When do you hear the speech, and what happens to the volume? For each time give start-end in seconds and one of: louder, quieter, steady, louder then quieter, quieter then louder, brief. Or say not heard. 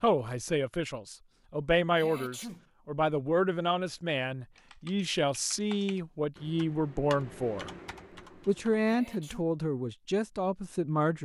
0.0-7.7 steady
8.4-11.1 brief.